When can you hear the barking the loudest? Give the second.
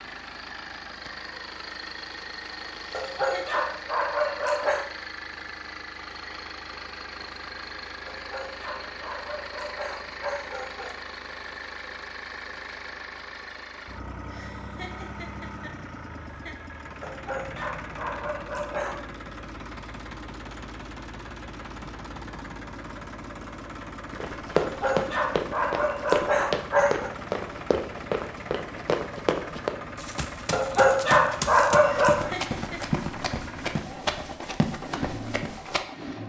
32 s.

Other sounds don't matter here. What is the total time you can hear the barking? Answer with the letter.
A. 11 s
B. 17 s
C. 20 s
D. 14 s
A.